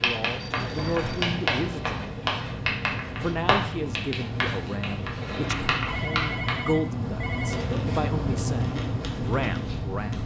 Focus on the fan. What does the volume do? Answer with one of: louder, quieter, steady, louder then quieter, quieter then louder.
louder.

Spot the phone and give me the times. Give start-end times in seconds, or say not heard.
0.3-1.2, 5.8-7.7.